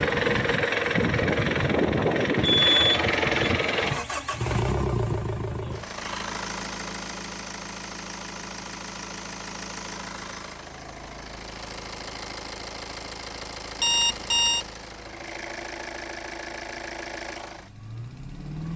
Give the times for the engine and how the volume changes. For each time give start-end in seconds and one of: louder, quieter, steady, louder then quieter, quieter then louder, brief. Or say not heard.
0.0-18.7 quieter.